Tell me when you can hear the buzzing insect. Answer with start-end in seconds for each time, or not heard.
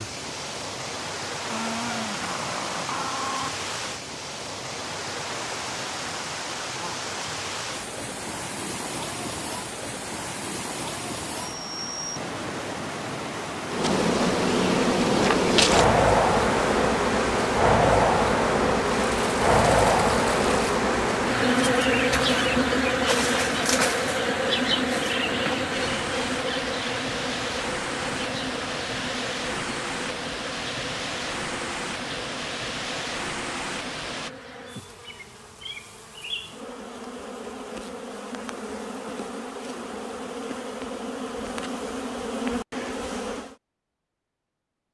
13.7-43.5.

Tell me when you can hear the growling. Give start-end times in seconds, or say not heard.
1.4-3.5.